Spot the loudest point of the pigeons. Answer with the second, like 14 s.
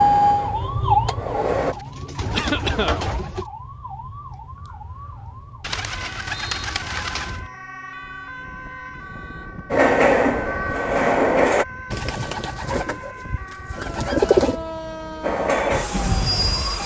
14 s.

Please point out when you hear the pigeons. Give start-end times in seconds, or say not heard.
1.6-3.5, 5.6-7.5, 11.9-14.6.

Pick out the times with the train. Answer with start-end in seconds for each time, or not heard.
0.0-1.8, 9.7-11.7, 15.2-16.8.